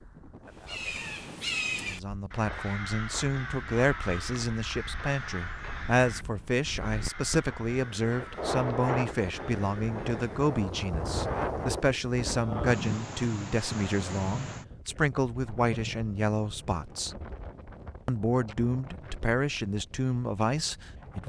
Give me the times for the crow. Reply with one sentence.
You can hear the crow from 0.6 to 10.6 s.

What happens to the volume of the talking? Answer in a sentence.
The volume of the talking stays about the same.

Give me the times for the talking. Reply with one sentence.
You can hear the talking from 1.8 to 17.1 s and from 18.1 to 21.2 s.